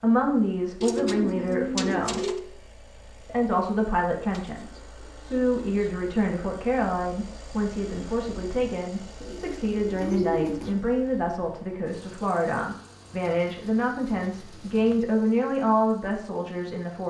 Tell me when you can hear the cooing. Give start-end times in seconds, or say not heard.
0.8-2.4, 4.3-6.0, 9.2-10.8, 13.1-15.1.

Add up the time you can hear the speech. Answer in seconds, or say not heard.
16 s.